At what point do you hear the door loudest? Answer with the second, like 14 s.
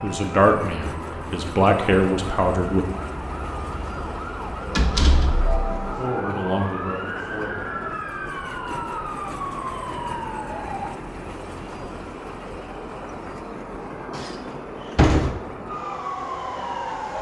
15 s.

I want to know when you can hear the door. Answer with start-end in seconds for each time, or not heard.
4.8-6.0, 14.2-15.3.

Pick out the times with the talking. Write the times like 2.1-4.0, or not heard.
0.0-2.9, 6.0-7.5.